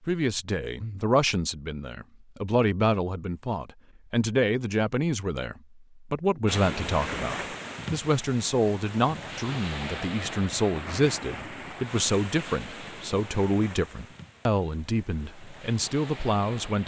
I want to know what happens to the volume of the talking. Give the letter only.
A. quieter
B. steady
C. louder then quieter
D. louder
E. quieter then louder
B.